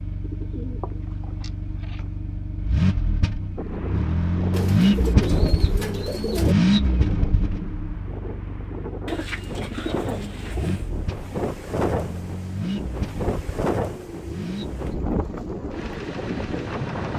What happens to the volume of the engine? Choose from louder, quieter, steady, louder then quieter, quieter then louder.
louder then quieter.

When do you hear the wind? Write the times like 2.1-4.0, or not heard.
3.5-17.1.